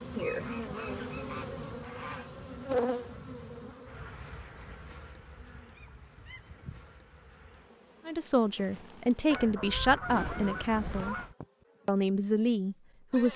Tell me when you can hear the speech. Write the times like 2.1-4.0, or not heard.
8.1-11.2, 11.8-13.3.